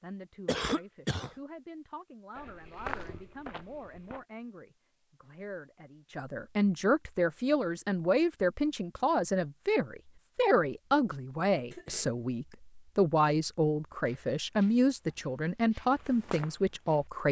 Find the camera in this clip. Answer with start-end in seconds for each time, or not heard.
not heard.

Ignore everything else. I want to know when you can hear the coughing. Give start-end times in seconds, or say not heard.
0.5-1.4, 11.7-12.1.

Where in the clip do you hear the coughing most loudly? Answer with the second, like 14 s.
1 s.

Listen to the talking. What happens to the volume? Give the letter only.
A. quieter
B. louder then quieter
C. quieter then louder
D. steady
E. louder
E.